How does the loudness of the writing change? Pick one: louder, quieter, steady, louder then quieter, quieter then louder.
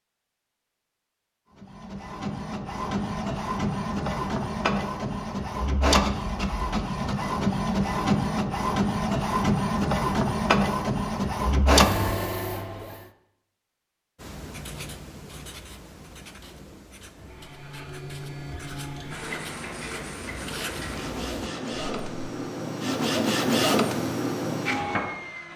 quieter then louder.